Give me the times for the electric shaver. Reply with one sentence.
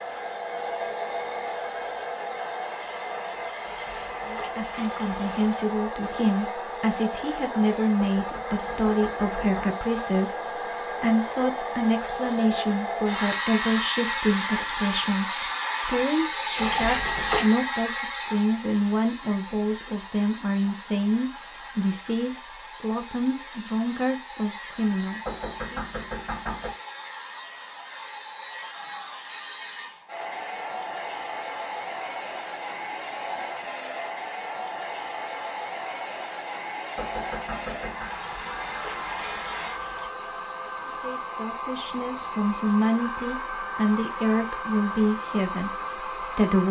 The electric shaver can't be heard in this clip.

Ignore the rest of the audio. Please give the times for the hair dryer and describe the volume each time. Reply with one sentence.
The hair dryer can be heard from 0.0 to 46.6 s, getting quieter then louder.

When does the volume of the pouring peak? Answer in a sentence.
The volume of the pouring peaks at 17 seconds.